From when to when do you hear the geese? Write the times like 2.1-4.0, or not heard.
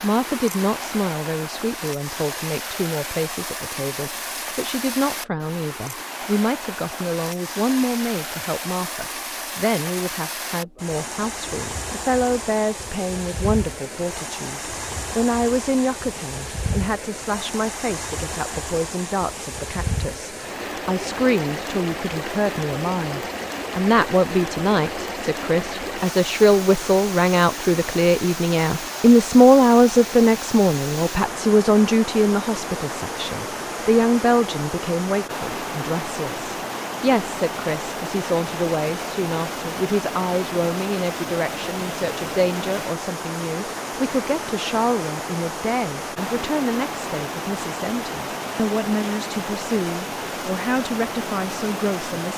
not heard.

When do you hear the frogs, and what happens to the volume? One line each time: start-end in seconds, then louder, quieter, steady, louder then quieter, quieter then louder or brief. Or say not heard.
not heard.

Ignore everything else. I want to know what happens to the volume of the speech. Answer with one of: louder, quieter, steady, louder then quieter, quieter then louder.
louder then quieter.